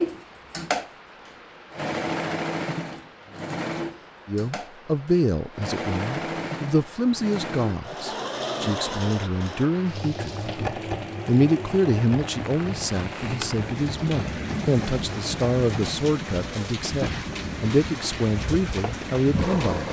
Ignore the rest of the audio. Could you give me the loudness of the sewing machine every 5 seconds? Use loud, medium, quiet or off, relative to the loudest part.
loud, loud, medium, medium.